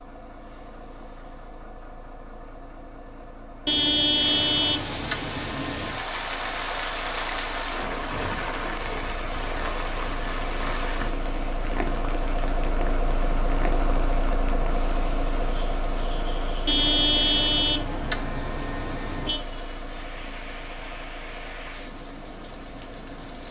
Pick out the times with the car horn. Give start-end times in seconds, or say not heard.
3.6-6.0, 16.6-19.4.